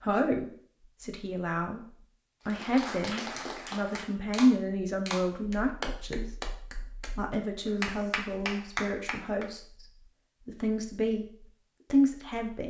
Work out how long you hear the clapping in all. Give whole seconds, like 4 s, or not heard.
7 s.